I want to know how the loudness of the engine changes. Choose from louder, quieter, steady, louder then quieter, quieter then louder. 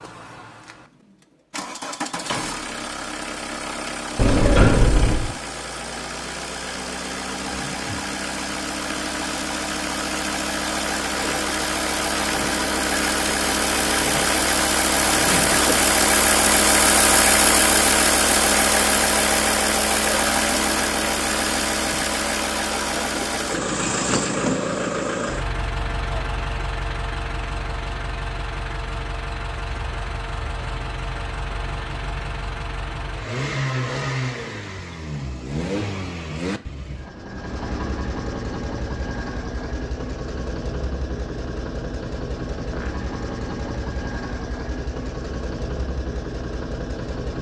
louder then quieter.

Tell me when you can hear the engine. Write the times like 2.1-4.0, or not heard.
0.0-47.3.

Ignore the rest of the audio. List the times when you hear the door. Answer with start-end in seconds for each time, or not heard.
4.2-5.3.